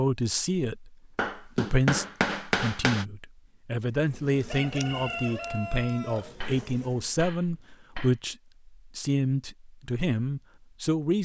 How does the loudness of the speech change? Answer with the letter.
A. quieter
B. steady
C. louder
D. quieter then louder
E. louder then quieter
B.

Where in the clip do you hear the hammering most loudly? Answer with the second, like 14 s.
2 s.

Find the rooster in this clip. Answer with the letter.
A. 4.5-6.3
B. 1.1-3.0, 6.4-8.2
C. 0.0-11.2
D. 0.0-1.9
A.